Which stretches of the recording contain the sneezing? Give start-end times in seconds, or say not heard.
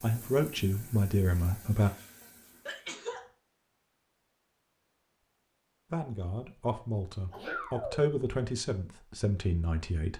2.2-3.2, 7.3-8.1.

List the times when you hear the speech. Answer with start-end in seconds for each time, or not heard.
0.0-1.9, 5.9-10.1.